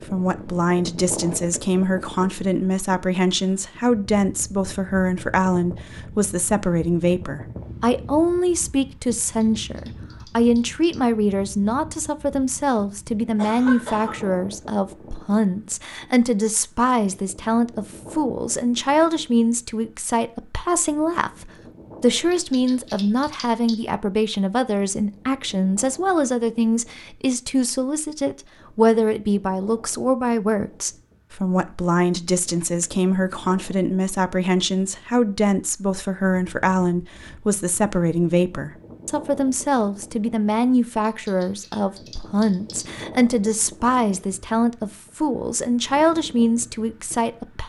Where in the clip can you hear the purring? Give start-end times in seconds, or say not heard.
not heard.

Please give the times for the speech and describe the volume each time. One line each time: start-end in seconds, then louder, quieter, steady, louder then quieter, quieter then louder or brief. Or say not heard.
0.0-47.6 steady.